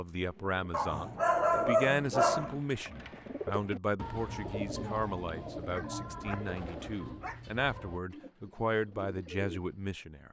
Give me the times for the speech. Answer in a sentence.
The speech can be heard from 0.0 to 10.2 s.